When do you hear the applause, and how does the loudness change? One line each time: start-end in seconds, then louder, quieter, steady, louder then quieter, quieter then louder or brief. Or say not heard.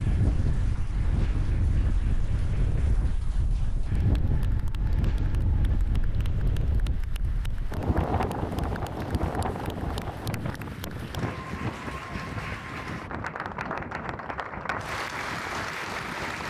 0.0-16.4 louder.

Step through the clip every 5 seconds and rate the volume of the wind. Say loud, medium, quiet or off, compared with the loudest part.
loud, loud, medium, medium.